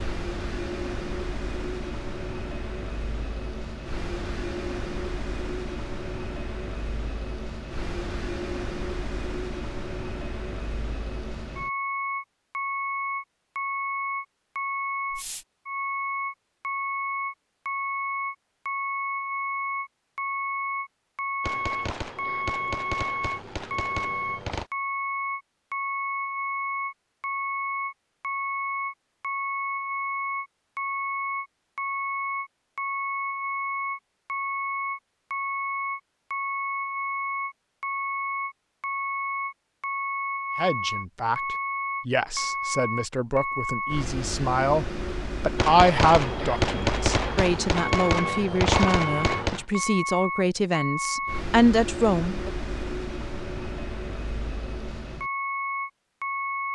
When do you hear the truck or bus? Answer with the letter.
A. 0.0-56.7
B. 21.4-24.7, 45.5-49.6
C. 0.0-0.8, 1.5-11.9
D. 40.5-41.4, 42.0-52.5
A.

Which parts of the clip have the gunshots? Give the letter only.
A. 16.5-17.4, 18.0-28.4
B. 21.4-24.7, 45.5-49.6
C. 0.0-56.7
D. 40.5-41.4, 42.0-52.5
B.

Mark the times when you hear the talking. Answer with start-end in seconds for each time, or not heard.
40.5-41.4, 42.0-52.5.